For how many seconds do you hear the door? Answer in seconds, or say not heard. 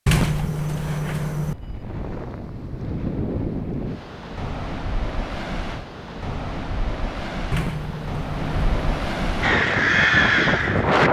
3 s.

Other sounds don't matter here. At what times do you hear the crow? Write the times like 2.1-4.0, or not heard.
9.4-11.0.